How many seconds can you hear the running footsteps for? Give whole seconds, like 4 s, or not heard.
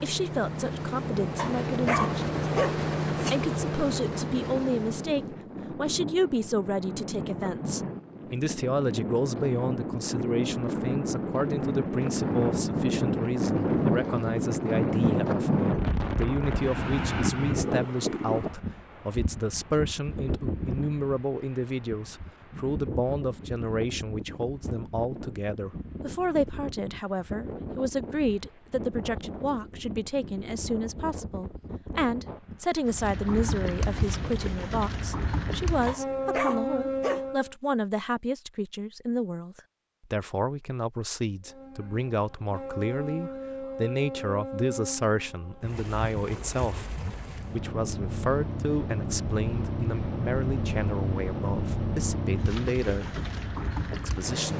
not heard.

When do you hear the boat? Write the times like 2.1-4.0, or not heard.
0.0-5.3, 32.9-37.5, 41.5-54.5.